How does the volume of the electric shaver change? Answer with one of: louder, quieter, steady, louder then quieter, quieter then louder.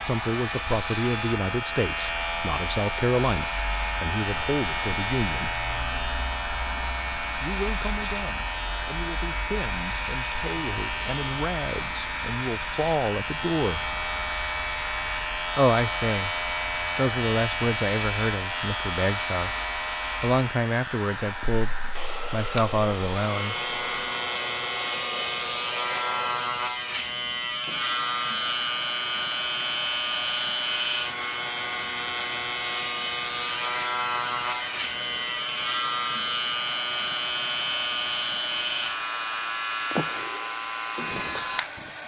steady.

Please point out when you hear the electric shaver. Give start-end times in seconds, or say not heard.
0.0-42.0.